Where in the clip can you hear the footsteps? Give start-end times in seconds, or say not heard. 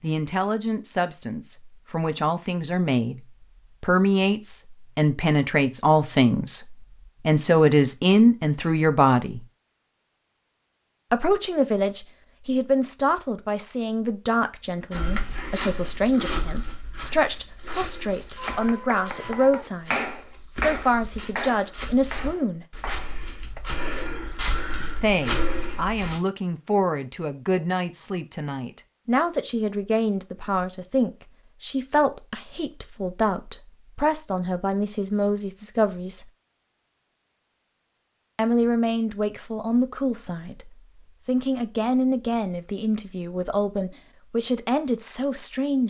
14.9-26.2.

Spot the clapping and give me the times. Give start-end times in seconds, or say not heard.
18.4-23.6.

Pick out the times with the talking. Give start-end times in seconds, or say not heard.
0.0-3.2, 3.8-9.4, 11.1-22.6, 25.0-36.2, 38.4-45.8.